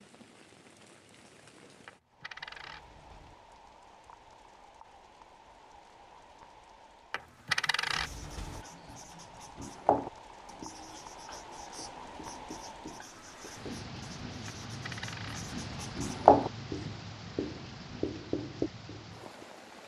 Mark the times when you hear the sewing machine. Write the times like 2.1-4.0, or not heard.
not heard.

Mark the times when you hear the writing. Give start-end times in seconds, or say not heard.
7.9-19.4.